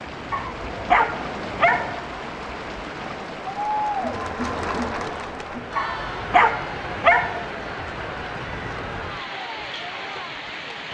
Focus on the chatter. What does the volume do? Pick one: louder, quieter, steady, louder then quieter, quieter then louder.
louder then quieter.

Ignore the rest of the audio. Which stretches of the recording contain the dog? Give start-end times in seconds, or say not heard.
0.3-2.0, 5.8-7.5.